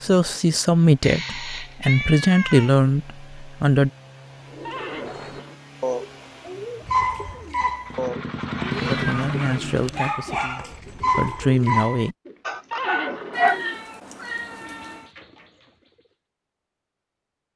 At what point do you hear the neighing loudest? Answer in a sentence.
The volume of the neighing peaks at 13 seconds.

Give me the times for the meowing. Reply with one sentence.
You can hear the meowing from 1.0 to 2.8 s, from 8.7 to 10.2 s and from 13.3 to 15.1 s.